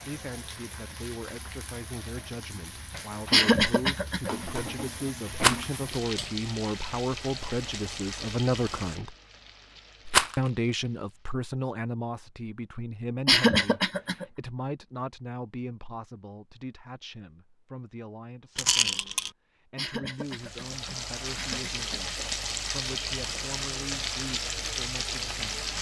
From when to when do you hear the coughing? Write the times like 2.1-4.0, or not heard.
3.3-4.5, 13.2-14.2, 19.8-22.1.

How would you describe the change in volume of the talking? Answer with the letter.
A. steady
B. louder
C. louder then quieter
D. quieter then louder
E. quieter
C.